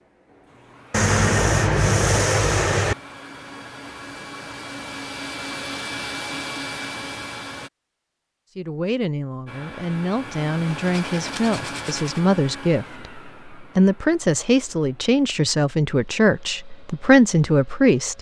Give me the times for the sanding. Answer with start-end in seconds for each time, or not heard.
0.9-3.0, 10.8-12.2.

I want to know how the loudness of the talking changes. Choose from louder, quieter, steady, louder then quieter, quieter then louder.
louder.